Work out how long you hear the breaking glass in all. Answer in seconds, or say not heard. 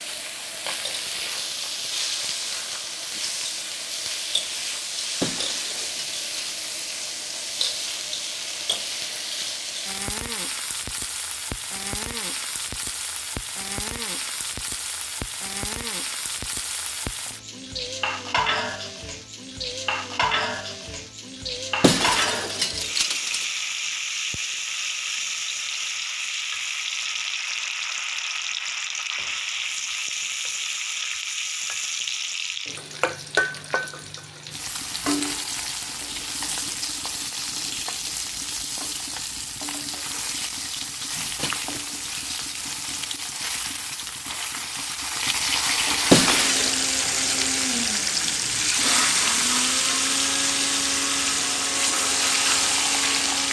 4 s.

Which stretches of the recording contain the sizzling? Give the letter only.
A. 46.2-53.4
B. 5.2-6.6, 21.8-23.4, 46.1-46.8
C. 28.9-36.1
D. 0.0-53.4
D.